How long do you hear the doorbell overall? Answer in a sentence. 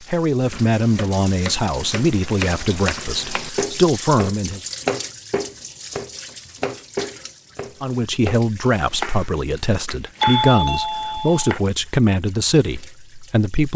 The doorbell can be heard for 2 seconds in total.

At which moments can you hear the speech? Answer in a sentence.
You can hear the speech from 0.1 to 4.6 s and from 7.8 to 13.7 s.